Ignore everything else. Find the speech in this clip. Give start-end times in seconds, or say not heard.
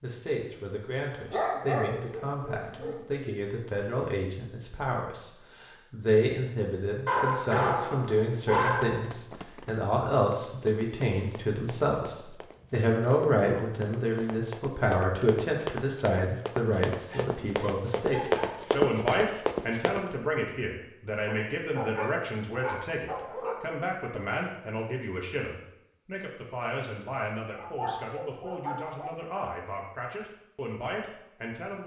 0.0-31.8.